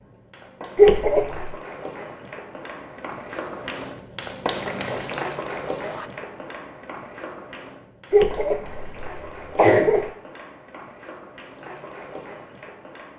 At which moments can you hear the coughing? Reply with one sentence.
You can hear the coughing from 0.8 to 1.5 s and from 8.1 to 10.1 s.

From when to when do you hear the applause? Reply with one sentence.
You can hear the applause from 0.0 to 13.1 s.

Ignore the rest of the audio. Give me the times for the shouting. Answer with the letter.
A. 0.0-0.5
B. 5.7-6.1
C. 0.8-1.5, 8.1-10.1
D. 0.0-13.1
B.